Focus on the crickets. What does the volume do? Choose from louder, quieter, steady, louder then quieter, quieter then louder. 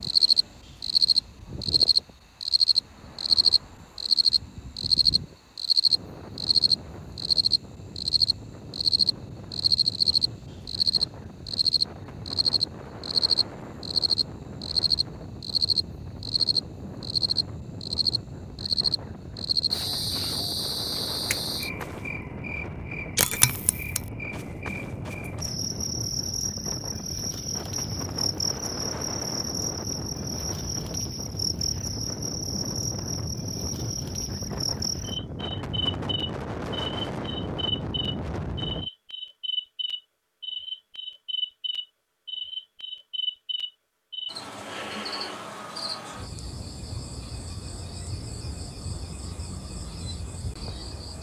quieter.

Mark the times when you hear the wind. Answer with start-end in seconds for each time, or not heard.
0.0-38.9.